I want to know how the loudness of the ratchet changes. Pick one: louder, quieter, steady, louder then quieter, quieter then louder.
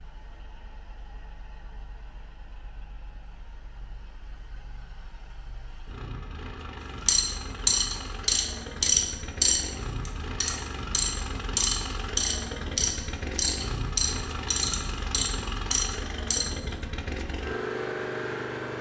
quieter.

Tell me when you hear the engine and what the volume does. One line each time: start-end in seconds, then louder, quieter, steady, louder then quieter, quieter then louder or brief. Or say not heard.
0.0-18.7 louder.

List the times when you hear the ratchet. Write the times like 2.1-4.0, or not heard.
7.0-16.4.